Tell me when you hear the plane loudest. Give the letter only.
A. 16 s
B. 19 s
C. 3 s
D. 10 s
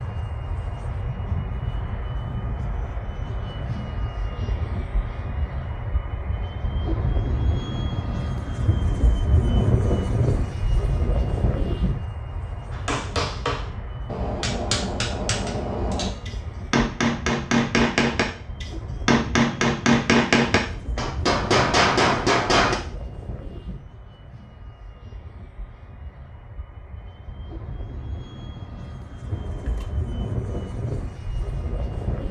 D.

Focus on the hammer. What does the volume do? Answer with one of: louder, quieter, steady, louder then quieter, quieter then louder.
louder.